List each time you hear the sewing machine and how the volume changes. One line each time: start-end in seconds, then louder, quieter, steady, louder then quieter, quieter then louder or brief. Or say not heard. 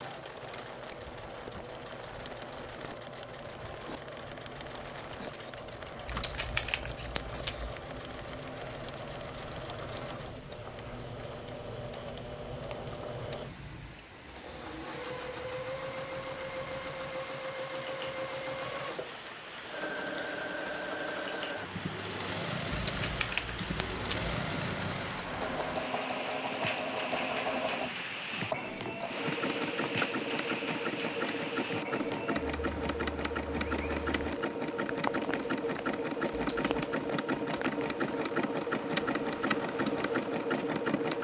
0.0-41.1 louder.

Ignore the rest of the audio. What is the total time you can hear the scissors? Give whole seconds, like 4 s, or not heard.
4 s.